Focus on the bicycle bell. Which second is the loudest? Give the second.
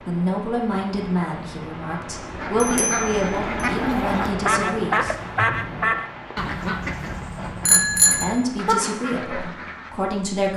8 s.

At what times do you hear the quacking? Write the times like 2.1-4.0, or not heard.
2.4-9.9.